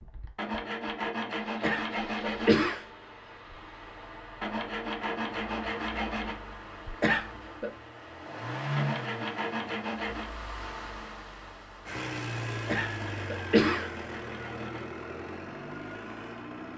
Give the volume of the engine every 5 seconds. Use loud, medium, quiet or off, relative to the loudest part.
medium, loud, loud, loud.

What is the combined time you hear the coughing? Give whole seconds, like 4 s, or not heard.
3 s.